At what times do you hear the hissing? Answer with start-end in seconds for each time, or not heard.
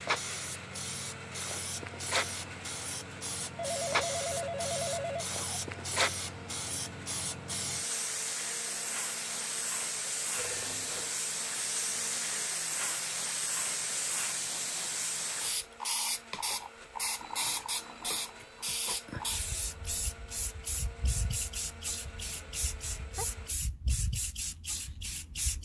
0.0-25.6.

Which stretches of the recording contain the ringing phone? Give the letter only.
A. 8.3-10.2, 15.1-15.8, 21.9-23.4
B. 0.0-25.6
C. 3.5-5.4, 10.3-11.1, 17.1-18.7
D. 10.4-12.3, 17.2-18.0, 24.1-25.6
C.